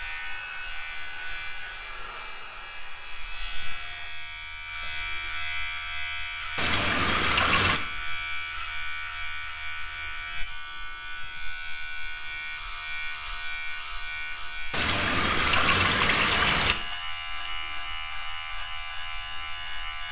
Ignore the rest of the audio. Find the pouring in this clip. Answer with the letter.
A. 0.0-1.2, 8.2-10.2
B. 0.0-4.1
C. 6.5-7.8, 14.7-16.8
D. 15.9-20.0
C.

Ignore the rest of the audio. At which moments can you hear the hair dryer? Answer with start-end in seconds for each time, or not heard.
0.0-4.1.